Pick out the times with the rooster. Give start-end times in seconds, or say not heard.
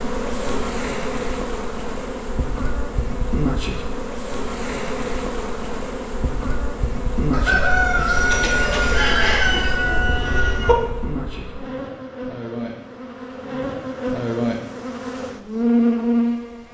7.3-10.8.